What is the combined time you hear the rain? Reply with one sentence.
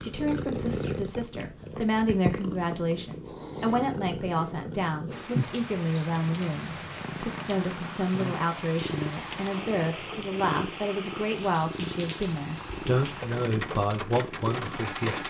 You can hear the rain for 10 seconds altogether.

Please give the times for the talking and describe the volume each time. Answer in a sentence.
The talking can be heard from 0.0 to 15.2 s, at a steady volume.